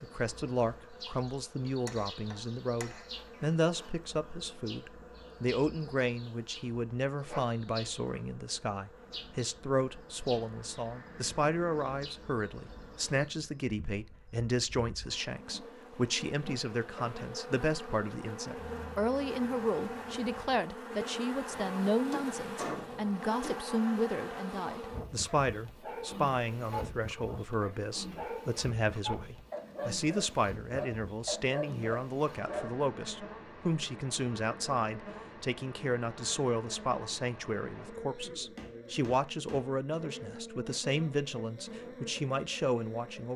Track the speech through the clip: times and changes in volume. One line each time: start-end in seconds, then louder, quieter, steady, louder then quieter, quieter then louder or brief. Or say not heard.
0.0-43.3 steady.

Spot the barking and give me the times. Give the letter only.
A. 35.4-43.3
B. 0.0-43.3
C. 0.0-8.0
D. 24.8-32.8
D.